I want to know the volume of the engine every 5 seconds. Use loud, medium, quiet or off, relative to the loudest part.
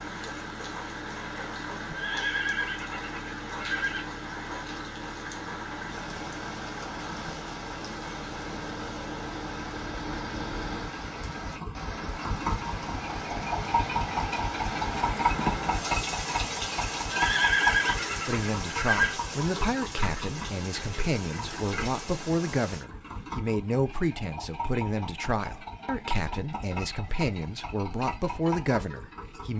medium, medium, loud, loud, medium, medium.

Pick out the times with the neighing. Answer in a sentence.
You can hear the neighing from 1.9 to 4.0 s and from 17.1 to 19.1 s.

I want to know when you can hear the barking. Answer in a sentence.
The barking can't be heard in this clip.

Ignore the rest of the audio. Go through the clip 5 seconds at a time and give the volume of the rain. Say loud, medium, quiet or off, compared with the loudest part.
medium, medium, loud, loud, medium, off.